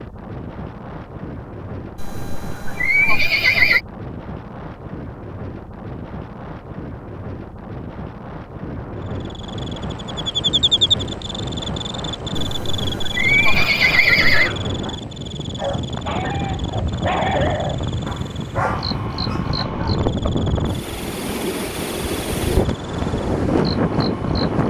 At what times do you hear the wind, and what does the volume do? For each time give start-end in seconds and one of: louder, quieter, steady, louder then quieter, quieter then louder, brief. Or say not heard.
0.0-24.6 louder.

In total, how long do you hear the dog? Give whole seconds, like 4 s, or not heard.
6 s.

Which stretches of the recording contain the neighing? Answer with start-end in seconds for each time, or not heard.
1.9-3.8, 12.4-14.5, 19.9-20.4.